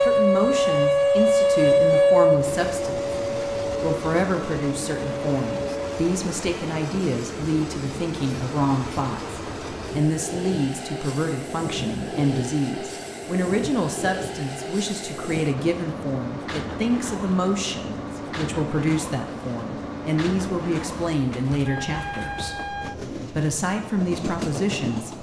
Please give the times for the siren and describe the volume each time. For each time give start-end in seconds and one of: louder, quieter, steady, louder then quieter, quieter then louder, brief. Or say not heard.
0.0-6.2 quieter.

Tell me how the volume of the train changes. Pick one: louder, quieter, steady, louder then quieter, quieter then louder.
steady.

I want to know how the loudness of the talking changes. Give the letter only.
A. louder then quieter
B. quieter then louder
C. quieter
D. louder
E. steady
E.